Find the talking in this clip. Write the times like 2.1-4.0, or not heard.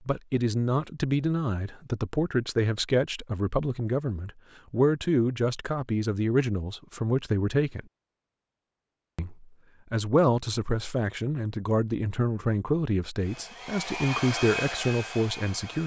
0.1-7.8, 9.2-15.8.